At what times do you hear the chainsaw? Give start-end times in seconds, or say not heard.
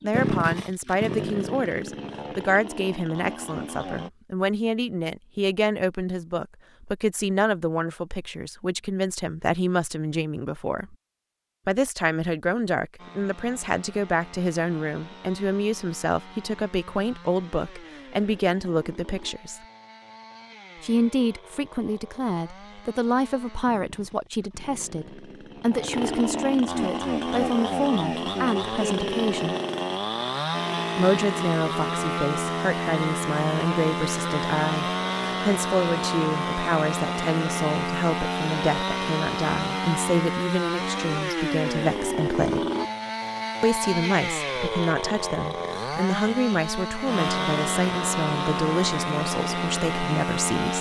0.0-4.1, 12.9-50.7.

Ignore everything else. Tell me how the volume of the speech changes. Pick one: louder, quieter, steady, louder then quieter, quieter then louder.
steady.